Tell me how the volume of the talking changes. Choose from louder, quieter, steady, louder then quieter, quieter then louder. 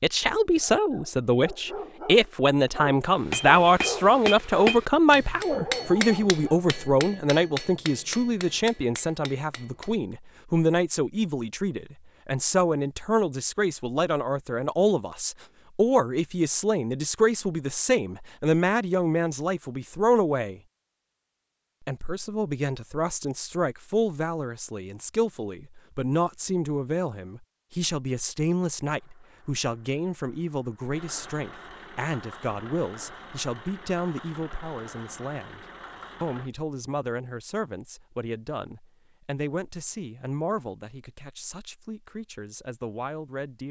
quieter.